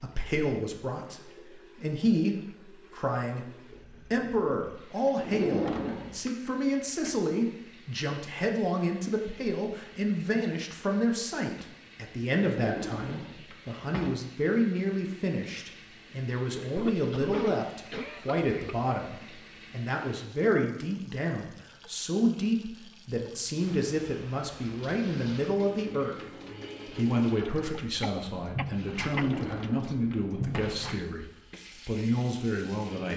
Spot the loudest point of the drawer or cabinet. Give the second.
6 s.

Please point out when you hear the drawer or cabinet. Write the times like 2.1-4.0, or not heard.
5.2-6.3, 12.6-14.2, 29.1-30.8.